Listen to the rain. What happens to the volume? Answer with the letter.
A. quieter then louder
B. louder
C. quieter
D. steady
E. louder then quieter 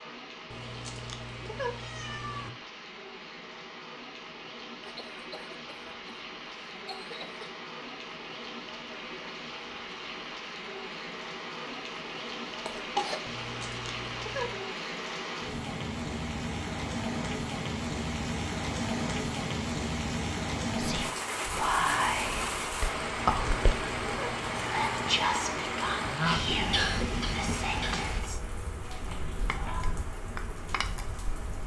B.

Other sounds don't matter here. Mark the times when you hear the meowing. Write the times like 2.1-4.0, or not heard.
0.5-2.5, 13.2-14.7, 23.3-25.1.